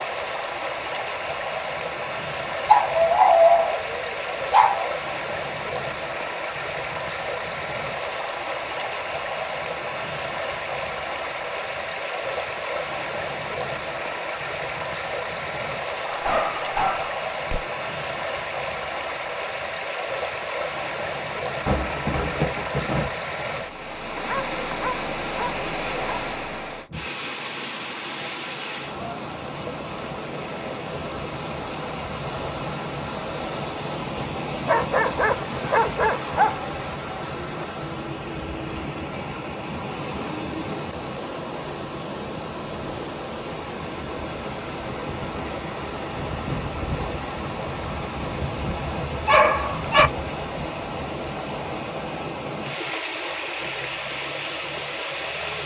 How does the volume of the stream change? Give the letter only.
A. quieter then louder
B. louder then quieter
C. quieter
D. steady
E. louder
D.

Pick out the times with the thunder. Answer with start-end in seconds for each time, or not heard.
21.6-23.1.